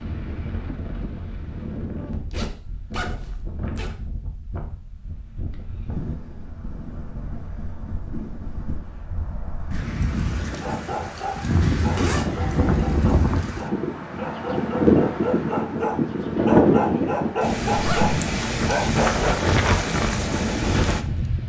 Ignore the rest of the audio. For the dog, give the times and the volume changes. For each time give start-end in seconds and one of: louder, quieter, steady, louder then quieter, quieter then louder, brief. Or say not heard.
10.6-19.8 louder.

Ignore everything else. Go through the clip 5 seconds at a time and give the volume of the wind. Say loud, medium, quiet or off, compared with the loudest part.
quiet, quiet, loud, loud, loud.